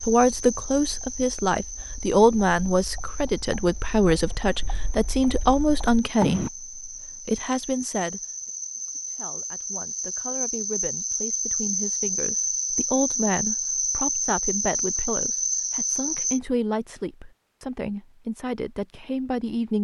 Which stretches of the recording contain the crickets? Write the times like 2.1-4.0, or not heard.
0.0-16.4.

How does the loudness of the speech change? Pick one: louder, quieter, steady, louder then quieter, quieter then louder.
quieter then louder.